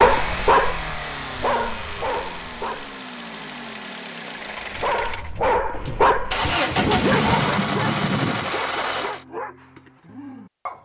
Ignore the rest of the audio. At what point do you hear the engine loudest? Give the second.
7 s.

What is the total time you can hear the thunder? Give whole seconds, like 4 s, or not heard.
3 s.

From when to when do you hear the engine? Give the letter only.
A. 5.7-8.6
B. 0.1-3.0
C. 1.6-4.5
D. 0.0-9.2
D.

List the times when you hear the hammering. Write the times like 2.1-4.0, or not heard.
not heard.